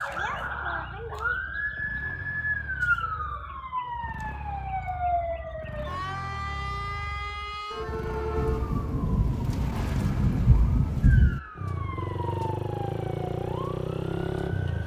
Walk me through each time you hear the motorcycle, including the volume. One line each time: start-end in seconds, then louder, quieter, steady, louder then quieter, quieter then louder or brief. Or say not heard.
0.0-14.8 louder.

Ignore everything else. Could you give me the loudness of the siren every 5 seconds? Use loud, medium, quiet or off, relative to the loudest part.
loud, loud, medium.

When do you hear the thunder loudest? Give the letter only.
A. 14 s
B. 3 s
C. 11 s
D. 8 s
C.